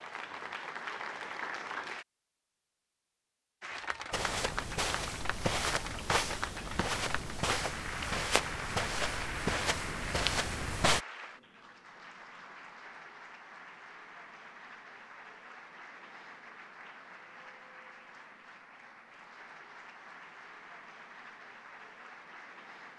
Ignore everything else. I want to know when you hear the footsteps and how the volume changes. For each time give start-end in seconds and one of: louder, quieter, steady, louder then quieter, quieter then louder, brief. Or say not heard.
4.1-11.0 steady.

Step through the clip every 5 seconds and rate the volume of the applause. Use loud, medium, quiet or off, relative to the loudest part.
loud, loud, medium, medium, medium.